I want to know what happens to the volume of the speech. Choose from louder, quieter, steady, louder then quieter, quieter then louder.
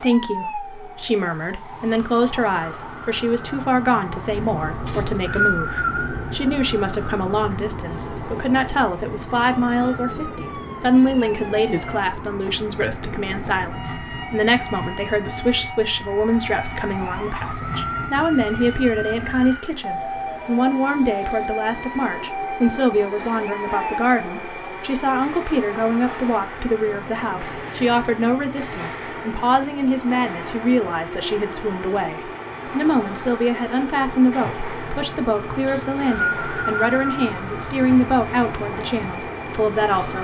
steady.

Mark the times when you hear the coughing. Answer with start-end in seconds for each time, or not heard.
not heard.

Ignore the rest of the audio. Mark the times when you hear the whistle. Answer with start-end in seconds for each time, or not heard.
4.8-6.2, 35.6-37.3.